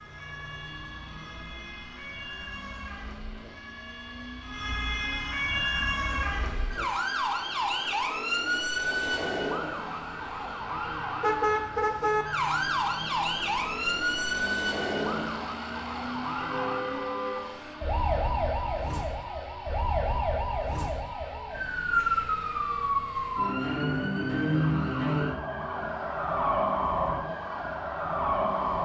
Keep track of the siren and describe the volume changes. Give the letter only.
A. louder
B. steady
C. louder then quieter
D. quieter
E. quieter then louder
A.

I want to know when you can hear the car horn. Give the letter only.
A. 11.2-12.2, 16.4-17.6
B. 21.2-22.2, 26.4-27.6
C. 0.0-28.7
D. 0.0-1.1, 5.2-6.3
A.